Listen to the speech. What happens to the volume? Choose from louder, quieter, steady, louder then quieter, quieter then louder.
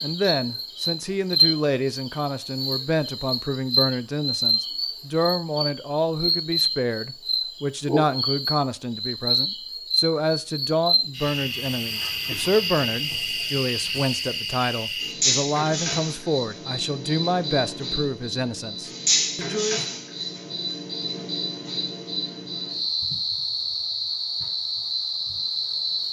steady.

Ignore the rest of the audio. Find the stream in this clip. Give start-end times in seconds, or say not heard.
not heard.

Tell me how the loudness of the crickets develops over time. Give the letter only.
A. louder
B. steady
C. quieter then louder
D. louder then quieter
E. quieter
B.